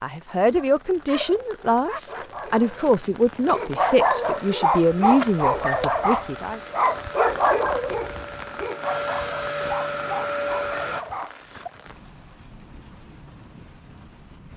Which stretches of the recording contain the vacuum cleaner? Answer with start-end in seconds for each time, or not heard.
4.2-11.1.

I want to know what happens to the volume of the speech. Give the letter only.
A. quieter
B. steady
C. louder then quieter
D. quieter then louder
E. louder
B.